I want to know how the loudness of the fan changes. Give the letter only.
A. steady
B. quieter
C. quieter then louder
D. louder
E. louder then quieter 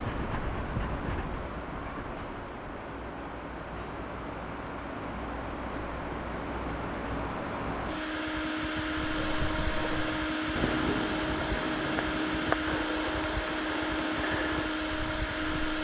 D.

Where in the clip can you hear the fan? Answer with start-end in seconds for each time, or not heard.
0.0-15.7.